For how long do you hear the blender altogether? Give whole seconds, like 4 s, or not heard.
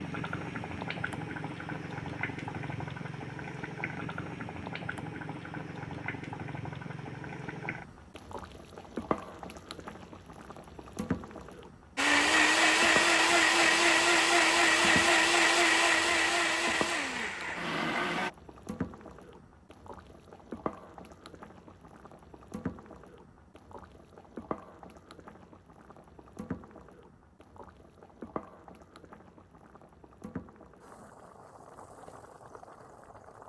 6 s.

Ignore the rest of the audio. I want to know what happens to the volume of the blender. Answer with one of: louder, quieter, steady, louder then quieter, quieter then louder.
quieter.